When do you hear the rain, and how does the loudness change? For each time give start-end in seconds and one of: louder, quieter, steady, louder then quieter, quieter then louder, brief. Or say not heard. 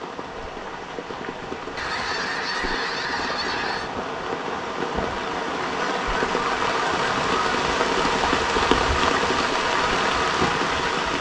0.0-11.1 louder.